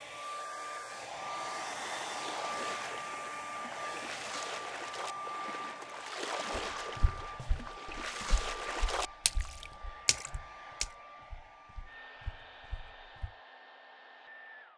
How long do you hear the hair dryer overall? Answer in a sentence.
You can hear the hair dryer for 15 seconds altogether.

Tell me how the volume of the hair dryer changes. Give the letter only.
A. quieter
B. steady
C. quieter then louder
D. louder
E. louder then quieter
A.